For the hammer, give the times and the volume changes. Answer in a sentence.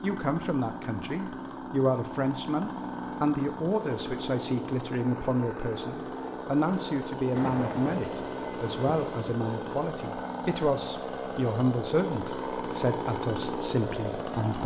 The hammer can't be heard in this clip.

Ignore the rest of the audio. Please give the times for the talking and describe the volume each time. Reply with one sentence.
You can hear the talking from 0.0 to 14.6 s, at a steady volume.